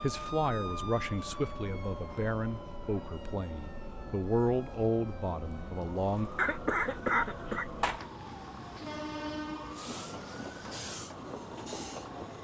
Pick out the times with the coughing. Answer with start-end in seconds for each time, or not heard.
6.3-8.1.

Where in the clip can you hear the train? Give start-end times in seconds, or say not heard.
0.0-12.3.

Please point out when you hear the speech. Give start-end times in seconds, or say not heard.
0.0-6.3.